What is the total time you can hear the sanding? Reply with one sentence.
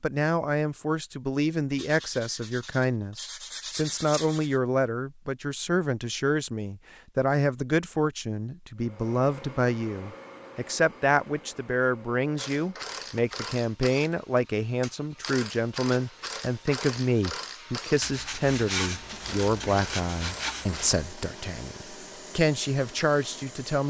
You can hear the sanding for 6 seconds altogether.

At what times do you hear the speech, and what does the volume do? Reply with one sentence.
The speech can be heard from 0.0 to 23.8 s, at a steady volume.